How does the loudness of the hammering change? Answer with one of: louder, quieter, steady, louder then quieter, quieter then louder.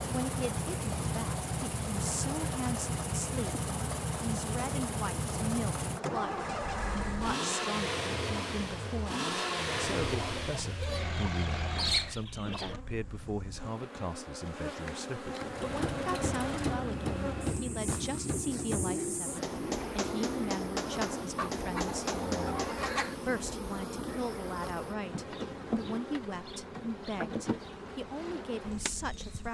steady.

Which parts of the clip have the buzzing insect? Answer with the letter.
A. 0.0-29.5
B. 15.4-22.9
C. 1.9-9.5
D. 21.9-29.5
A.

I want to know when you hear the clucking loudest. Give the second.
12 s.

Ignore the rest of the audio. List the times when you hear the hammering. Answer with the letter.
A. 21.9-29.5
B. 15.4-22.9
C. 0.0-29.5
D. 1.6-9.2
B.